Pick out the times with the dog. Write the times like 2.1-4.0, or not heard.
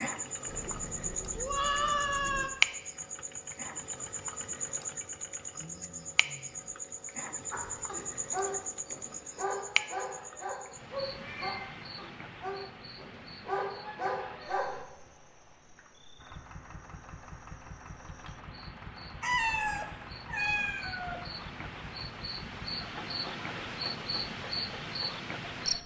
7.5-14.8.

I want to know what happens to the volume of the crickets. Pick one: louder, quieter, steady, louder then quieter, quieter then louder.
quieter then louder.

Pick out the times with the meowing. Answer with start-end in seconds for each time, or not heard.
0.5-2.5, 11.2-11.8, 19.2-21.2.